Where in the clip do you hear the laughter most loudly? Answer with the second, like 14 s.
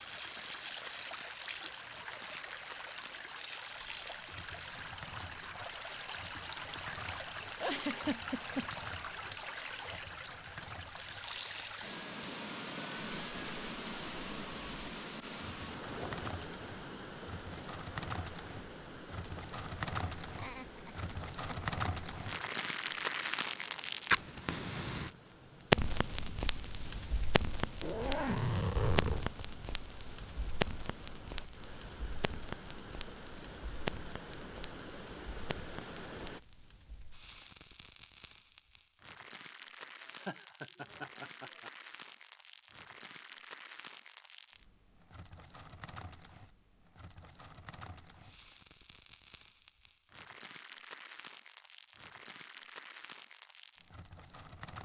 8 s.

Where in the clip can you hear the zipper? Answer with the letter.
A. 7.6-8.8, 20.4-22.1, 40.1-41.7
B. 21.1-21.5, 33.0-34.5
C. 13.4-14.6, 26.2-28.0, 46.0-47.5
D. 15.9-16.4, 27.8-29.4
D.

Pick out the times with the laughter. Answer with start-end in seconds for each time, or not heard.
7.6-8.8, 20.4-22.1, 40.1-41.7.